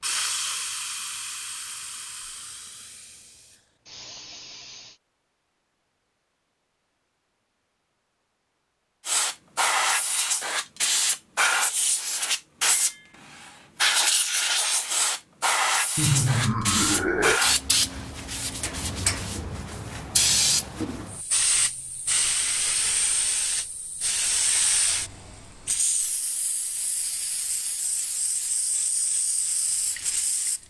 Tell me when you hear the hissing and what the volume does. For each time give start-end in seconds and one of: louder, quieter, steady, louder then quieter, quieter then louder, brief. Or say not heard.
0.0-5.0 quieter then louder
9.1-30.6 quieter.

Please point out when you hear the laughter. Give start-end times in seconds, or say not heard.
15.9-17.4.